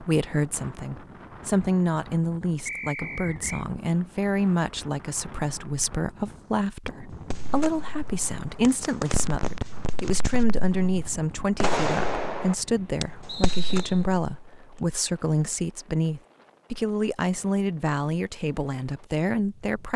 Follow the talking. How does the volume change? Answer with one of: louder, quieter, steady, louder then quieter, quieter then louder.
steady.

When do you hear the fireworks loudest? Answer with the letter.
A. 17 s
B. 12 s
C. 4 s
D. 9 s
B.